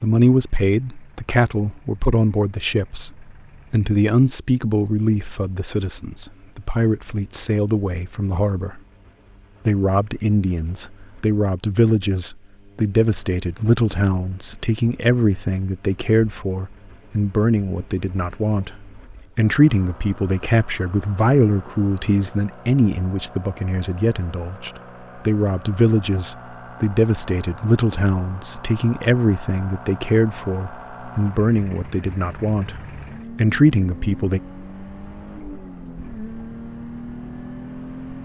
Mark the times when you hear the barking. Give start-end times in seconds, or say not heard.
not heard.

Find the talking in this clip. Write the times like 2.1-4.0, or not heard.
0.0-8.8, 9.7-34.4.